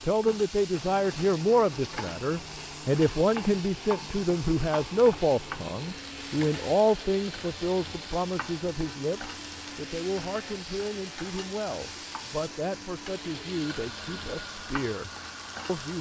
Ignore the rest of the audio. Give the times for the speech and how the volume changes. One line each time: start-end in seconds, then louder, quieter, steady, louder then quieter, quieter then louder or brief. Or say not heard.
0.0-15.9 quieter.